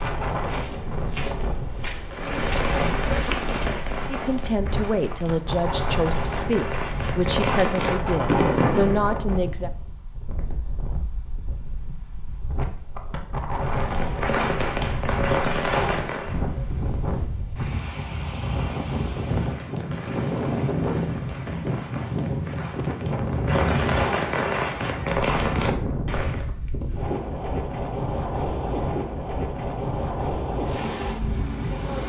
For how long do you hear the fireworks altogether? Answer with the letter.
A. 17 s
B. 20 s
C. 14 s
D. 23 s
A.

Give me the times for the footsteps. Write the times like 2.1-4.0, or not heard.
0.0-3.9.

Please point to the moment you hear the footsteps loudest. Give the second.
3 s.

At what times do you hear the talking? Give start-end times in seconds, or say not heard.
4.1-9.7.